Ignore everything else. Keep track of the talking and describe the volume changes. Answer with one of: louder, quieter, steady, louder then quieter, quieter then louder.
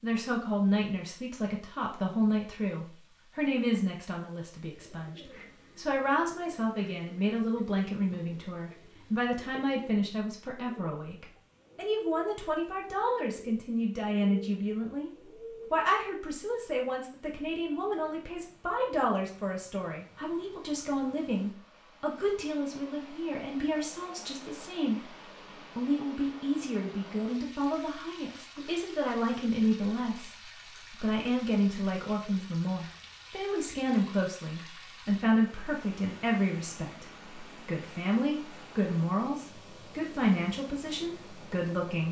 steady.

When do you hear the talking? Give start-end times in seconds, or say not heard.
0.0-25.1, 25.8-42.0.